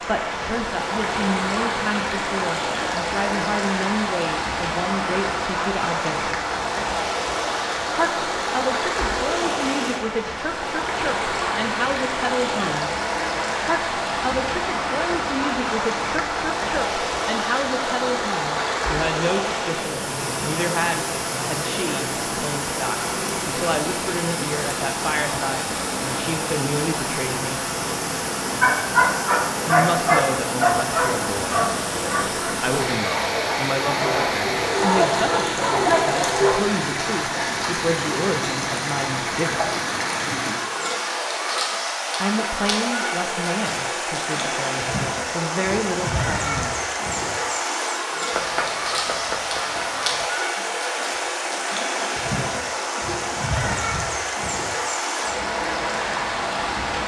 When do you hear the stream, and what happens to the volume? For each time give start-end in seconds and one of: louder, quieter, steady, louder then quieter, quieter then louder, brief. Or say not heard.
0.0-57.0 steady.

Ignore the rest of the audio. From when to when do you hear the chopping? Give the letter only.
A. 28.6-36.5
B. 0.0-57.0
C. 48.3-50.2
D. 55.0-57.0
C.